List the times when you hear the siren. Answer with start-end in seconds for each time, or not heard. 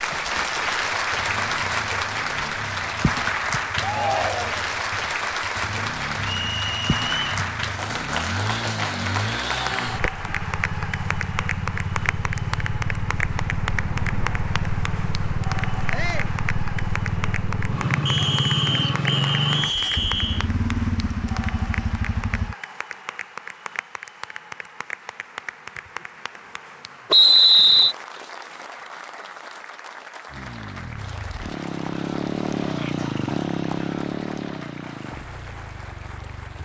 not heard.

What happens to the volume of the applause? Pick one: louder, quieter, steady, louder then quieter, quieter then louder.
quieter.